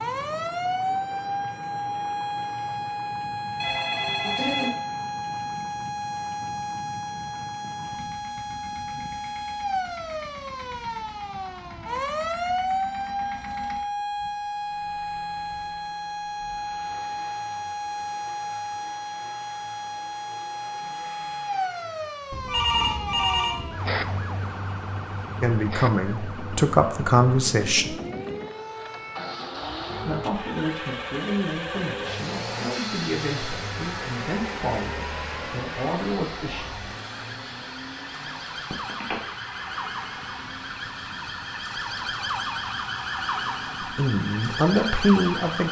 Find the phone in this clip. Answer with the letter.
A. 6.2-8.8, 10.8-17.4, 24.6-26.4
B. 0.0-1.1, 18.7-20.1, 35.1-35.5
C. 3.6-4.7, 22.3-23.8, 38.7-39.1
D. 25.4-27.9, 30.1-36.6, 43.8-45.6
C.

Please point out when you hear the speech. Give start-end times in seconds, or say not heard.
25.4-27.9, 30.1-36.6, 43.8-45.6.